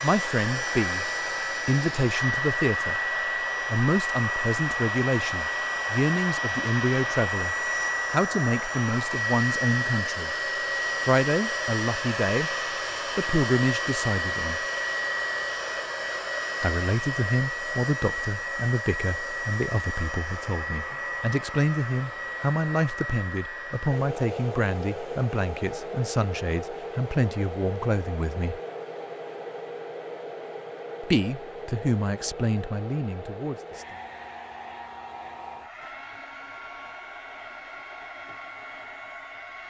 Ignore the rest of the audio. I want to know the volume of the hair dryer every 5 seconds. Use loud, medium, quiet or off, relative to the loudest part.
loud, loud, loud, loud, medium, medium, medium, quiet.